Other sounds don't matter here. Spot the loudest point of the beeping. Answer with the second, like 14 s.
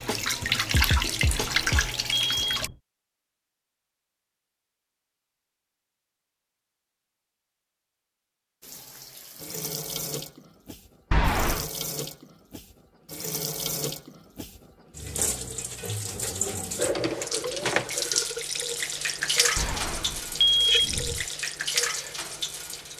21 s.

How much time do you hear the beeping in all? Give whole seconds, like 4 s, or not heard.
4 s.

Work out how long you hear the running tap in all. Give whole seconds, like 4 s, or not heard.
17 s.